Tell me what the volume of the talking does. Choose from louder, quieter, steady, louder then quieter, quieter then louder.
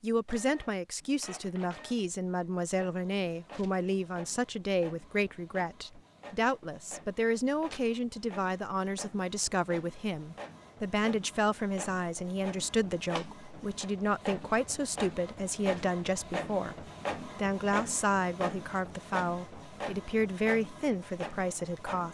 steady.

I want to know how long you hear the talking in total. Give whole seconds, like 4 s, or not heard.
22 s.